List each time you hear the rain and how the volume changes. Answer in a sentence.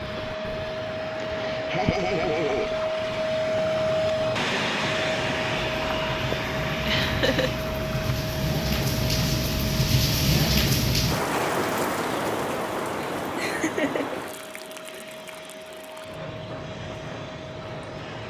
The rain can be heard from 0.0 to 18.2 s, getting louder then quieter.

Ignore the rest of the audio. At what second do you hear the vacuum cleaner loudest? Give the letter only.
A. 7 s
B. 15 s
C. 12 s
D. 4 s
D.